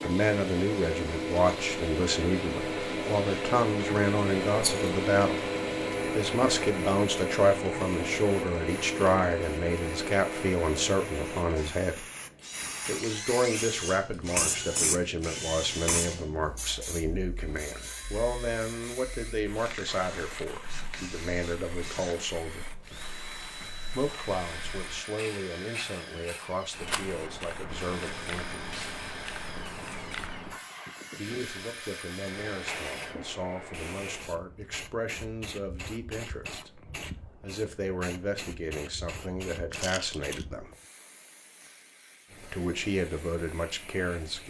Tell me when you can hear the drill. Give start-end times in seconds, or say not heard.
0.0-33.1.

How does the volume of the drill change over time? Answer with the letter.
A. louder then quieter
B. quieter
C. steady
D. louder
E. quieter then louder
B.